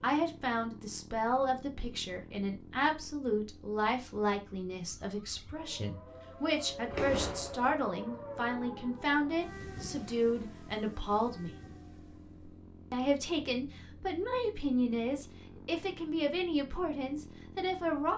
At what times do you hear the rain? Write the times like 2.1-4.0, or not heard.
not heard.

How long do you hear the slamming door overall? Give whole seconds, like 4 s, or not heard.
2 s.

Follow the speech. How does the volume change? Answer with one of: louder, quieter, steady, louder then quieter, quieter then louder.
steady.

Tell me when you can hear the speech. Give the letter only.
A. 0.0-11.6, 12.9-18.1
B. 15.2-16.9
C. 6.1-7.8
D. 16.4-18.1
A.